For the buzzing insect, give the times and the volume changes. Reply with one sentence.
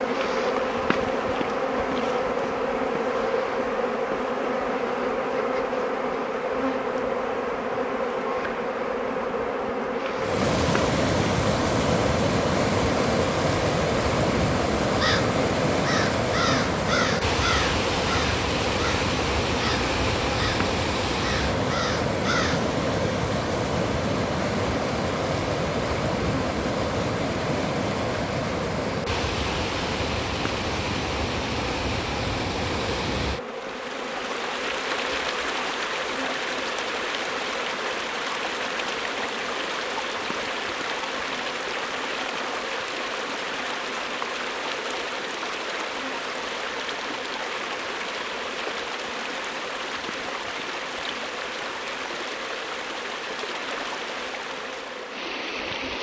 You can hear the buzzing insect from 0.0 to 55.9 s, getting quieter.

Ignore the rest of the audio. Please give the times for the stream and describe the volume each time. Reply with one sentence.
The stream can be heard from 10.2 to 55.9 s, getting quieter.